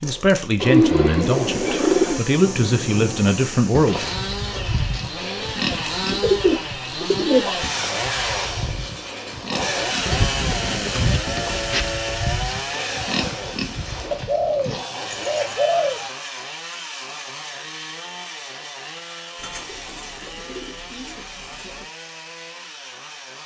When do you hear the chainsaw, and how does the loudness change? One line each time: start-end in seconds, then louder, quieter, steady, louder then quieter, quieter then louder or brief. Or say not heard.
0.0-23.4 louder then quieter.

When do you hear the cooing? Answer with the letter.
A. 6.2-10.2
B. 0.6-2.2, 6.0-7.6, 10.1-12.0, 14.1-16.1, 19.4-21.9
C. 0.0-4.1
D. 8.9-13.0
B.